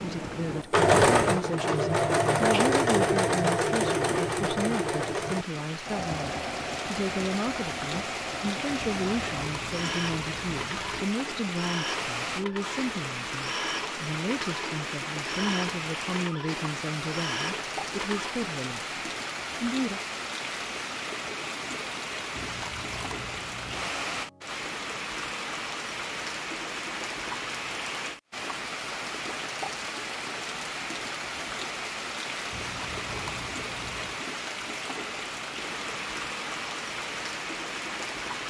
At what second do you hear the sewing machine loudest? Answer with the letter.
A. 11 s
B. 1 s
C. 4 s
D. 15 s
B.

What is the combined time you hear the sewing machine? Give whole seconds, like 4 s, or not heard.
18 s.